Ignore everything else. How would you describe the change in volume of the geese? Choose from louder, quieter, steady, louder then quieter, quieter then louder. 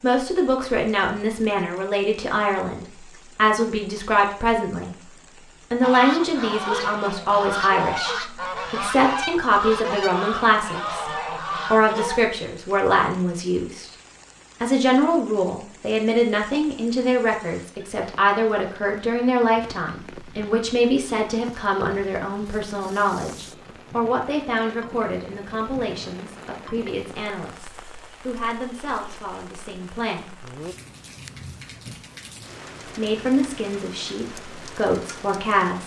steady.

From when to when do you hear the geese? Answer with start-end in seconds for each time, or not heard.
5.8-12.2.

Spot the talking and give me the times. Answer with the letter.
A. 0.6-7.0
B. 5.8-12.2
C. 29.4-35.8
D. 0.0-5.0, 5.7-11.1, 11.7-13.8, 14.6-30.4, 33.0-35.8
D.